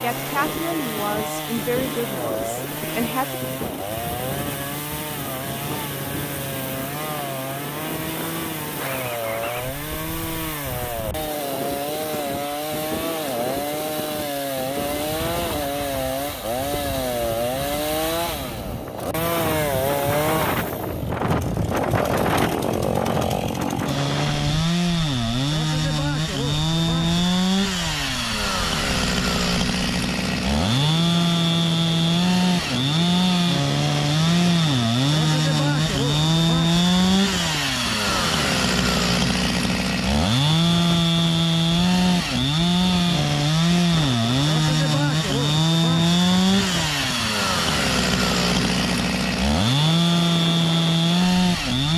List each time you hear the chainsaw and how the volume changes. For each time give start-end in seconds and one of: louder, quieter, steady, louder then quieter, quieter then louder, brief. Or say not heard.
0.0-51.9 louder.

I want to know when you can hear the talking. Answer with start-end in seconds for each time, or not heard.
0.0-3.4.